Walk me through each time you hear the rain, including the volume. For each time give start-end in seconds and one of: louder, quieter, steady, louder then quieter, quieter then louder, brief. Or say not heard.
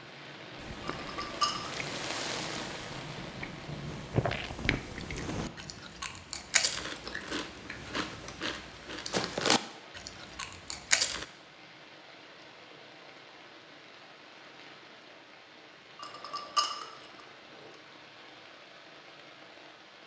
0.0-20.0 quieter.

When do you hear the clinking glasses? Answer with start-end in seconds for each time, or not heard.
0.8-1.8, 15.9-17.7.